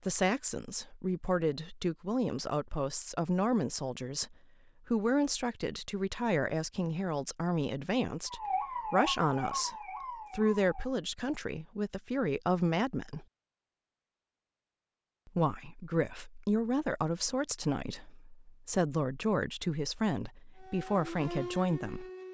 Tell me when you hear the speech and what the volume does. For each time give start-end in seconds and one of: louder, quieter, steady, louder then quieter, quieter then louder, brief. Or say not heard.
0.1-13.2 steady
15.2-22.1 steady.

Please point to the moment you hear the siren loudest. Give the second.
9 s.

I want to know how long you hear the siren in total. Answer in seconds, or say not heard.
4 s.